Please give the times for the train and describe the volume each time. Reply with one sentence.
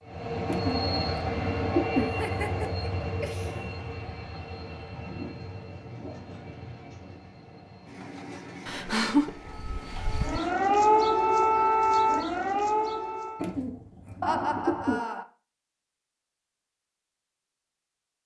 The train can be heard from 0.0 to 10.5 s, getting quieter.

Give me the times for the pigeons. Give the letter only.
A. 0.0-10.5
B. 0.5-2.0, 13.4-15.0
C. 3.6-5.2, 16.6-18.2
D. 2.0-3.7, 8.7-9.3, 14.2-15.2
B.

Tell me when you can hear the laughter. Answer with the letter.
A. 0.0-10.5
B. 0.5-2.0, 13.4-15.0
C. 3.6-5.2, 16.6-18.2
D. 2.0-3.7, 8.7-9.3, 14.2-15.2
D.